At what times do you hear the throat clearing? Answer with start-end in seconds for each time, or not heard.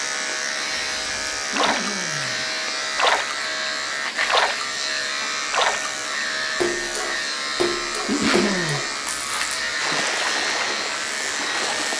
1.5-2.5, 8.1-8.8.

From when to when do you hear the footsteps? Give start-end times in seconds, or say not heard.
not heard.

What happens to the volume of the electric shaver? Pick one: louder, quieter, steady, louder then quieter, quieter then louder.
steady.